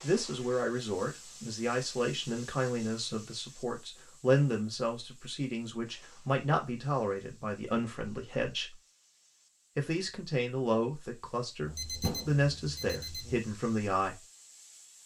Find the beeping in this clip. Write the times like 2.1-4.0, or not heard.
11.6-13.4.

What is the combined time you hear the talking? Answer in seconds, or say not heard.
13 s.